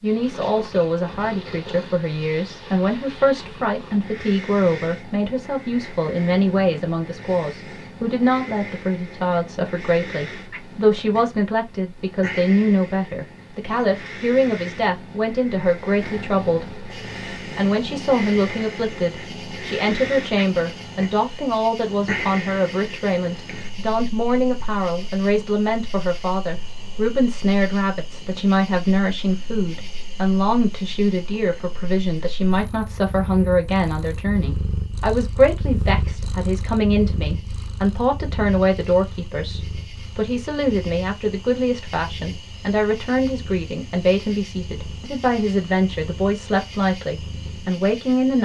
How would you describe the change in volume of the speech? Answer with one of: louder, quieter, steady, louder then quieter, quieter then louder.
steady.